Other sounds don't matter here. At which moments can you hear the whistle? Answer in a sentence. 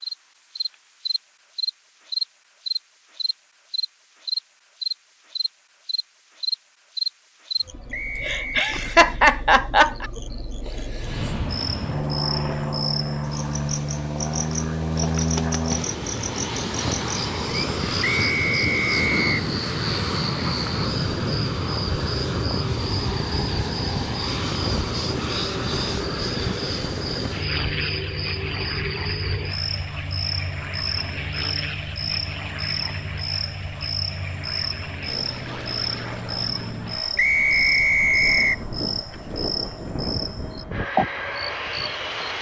You can hear the whistle from 7.9 to 8.7 s, from 18.0 to 19.4 s and from 37.1 to 38.6 s.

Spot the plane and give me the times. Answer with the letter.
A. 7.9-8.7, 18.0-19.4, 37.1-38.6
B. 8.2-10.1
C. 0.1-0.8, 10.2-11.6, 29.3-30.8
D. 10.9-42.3
D.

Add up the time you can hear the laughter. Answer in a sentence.
The laughter can be heard for 2 seconds in total.